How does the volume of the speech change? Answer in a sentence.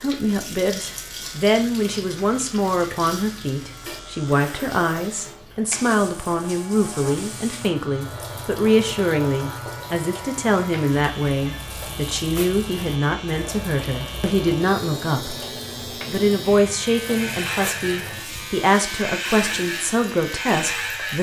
The loudness of the speech stays about the same.